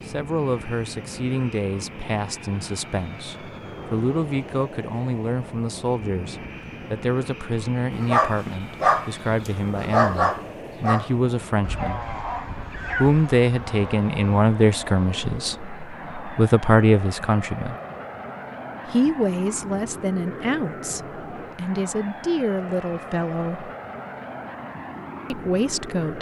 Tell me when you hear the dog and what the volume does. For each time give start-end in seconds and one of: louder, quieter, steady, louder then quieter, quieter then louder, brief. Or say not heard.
7.9-13.3 quieter.